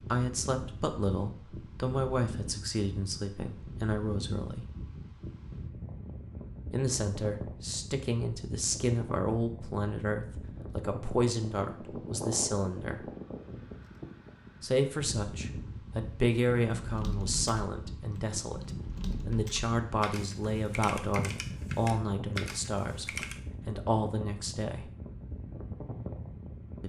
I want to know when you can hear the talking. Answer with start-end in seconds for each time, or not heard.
0.1-4.7, 6.7-13.1, 14.6-24.9.